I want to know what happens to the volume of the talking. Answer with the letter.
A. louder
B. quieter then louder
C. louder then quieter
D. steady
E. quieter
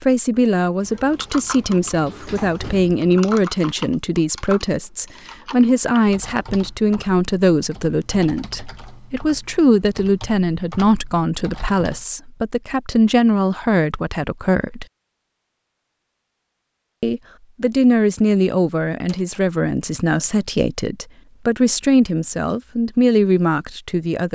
D.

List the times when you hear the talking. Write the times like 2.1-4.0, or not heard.
0.0-14.8, 17.0-24.3.